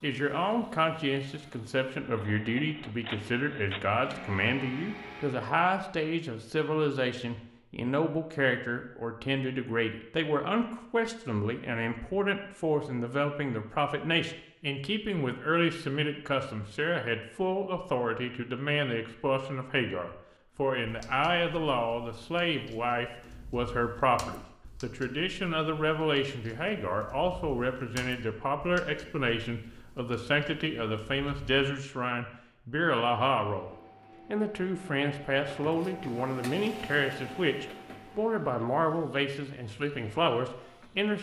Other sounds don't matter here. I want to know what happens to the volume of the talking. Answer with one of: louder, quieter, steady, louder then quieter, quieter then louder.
steady.